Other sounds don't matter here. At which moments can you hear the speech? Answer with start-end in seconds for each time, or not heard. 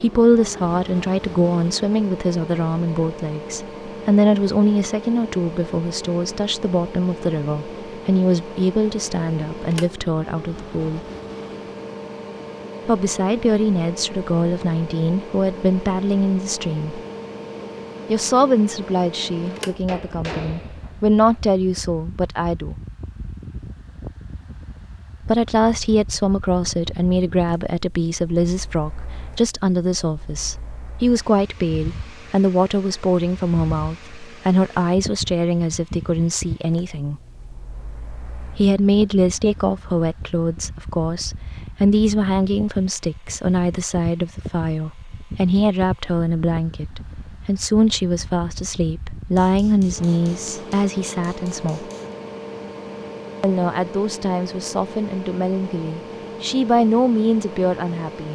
0.0-11.0, 12.8-17.0, 18.1-22.8, 25.2-37.2, 38.5-51.9, 53.4-58.3.